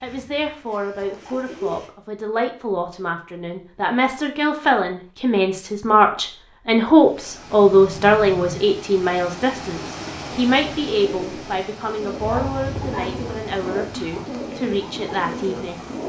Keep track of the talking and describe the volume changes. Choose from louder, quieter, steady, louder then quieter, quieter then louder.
louder then quieter.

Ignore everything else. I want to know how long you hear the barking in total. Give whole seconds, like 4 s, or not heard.
2 s.